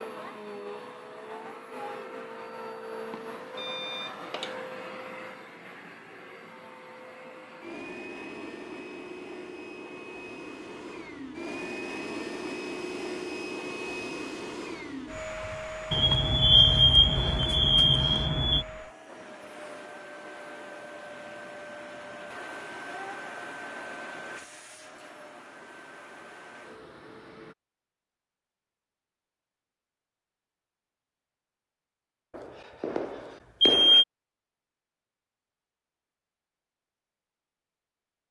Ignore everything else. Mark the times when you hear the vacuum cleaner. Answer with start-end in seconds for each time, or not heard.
0.0-27.6.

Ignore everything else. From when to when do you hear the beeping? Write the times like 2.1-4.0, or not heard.
3.1-4.5, 15.9-18.6, 32.4-34.0.